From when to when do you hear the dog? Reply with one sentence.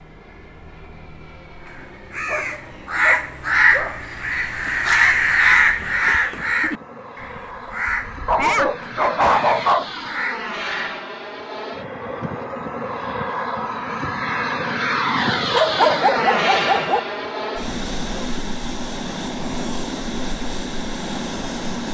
You can hear the dog from 2.2 to 4.0 s, from 8.2 to 9.9 s and from 15.5 to 17.0 s.